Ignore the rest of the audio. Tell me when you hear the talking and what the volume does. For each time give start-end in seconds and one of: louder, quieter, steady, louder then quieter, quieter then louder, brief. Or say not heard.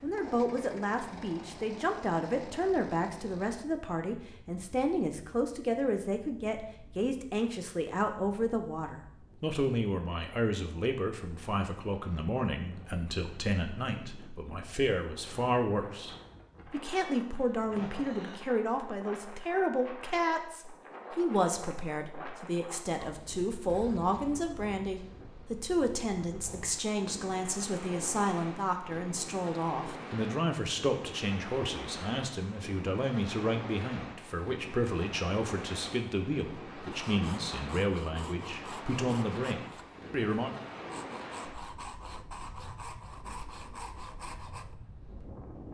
0.0-40.5 steady.